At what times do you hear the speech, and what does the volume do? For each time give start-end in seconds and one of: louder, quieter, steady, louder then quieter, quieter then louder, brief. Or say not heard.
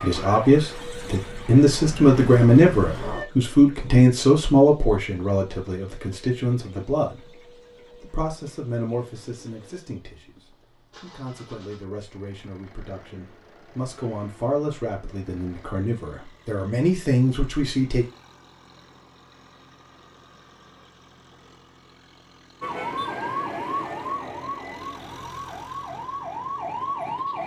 0.0-18.1 quieter then louder.